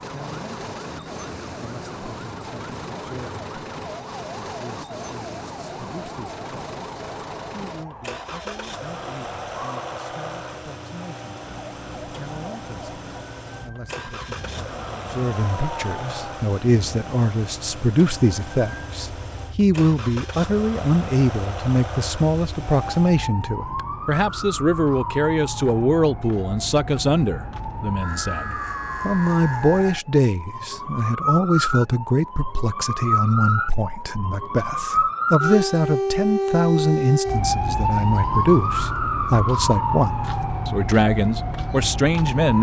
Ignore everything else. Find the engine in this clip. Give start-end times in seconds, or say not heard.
0.0-23.2.